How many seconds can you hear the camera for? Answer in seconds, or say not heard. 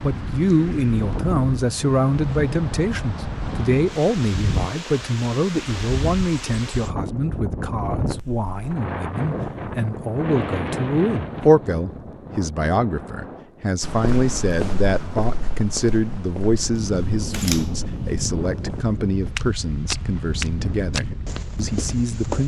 2 s.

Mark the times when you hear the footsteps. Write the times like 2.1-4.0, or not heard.
13.8-22.4.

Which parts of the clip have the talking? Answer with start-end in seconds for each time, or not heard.
0.0-22.4.